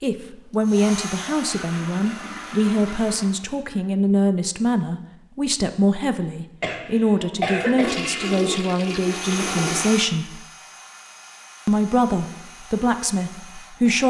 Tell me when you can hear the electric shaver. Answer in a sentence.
You can't hear the electric shaver here.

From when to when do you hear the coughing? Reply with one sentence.
You can hear the coughing from 6.6 to 8.2 s.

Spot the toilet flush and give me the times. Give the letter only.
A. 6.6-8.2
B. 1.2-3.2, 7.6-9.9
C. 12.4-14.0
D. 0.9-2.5
B.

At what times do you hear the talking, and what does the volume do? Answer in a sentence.
You can hear the talking from 0.0 to 10.4 s, at a steady volume; and briefly from 11.7 to 14.0 s.